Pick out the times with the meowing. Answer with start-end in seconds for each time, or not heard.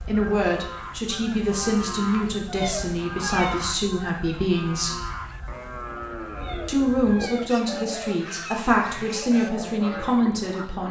2.5-3.6, 6.3-7.5.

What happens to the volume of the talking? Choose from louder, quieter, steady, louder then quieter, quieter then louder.
steady.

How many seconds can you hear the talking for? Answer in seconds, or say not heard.
9 s.